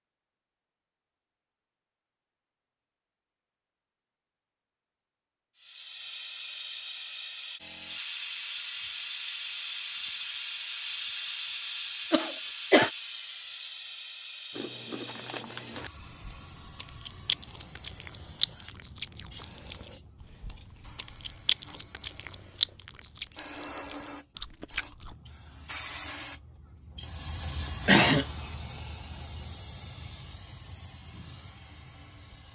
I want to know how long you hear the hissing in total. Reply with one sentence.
You can hear the hissing for 27 seconds altogether.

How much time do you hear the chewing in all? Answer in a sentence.
You can hear the chewing for 11 seconds altogether.